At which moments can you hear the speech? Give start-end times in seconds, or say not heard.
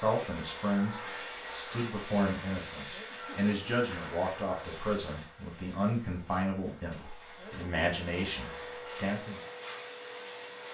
0.0-9.4.